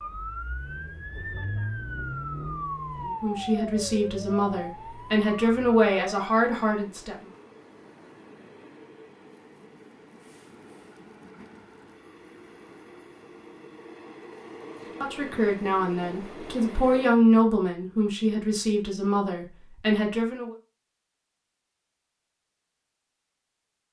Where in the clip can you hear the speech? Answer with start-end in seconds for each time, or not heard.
3.0-7.2, 15.0-20.6.